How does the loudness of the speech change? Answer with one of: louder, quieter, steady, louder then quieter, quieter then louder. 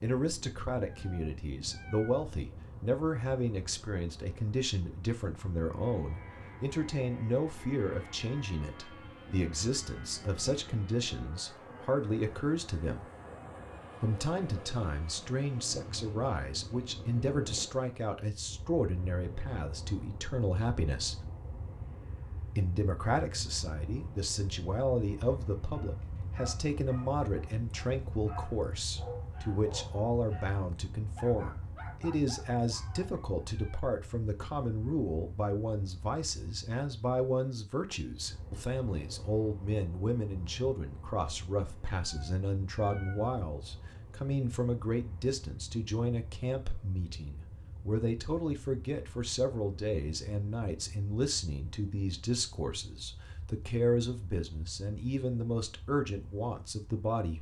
steady.